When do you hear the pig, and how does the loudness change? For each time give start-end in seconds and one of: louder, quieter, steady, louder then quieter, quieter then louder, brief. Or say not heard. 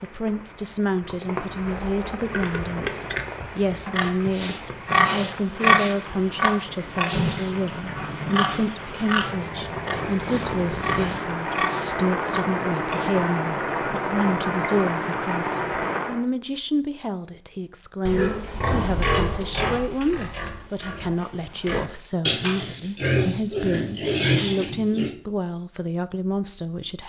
2.2-13.1 louder then quieter
18.1-25.1 quieter then louder.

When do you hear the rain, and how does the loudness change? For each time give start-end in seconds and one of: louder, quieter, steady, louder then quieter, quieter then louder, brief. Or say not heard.
0.0-16.2 louder.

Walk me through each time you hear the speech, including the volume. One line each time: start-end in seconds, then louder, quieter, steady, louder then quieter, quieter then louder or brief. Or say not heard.
0.0-27.0 steady.